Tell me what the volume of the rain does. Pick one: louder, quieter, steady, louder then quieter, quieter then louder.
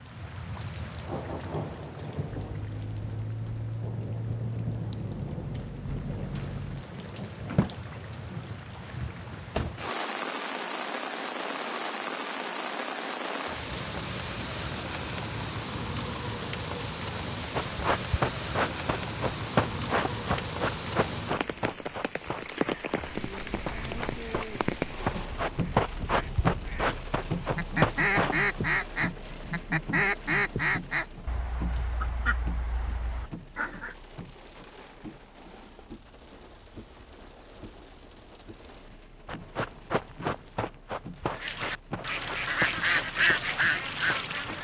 quieter.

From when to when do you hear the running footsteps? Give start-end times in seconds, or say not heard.
17.6-28.4, 39.2-44.5.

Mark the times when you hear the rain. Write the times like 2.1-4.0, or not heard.
0.0-44.5.